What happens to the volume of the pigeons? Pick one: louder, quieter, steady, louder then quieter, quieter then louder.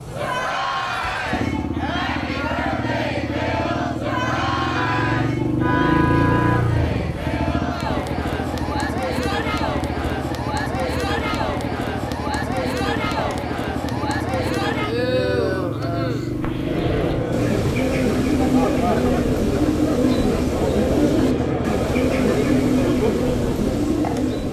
steady.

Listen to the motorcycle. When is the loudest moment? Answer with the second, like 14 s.
6 s.